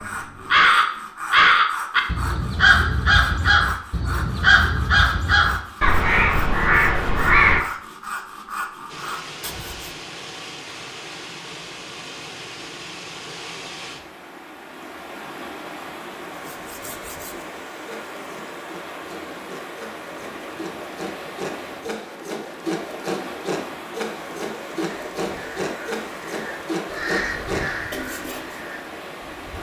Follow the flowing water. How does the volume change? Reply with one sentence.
The loudness of the flowing water stays about the same.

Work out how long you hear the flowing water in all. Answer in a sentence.
The flowing water can be heard for 21 seconds in total.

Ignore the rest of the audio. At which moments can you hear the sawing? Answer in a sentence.
The sawing can be heard from 0.0 to 9.9 s and from 16.4 to 28.6 s.